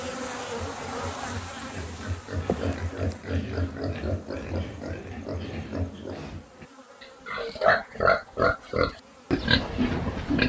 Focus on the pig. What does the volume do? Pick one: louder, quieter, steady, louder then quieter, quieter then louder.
louder.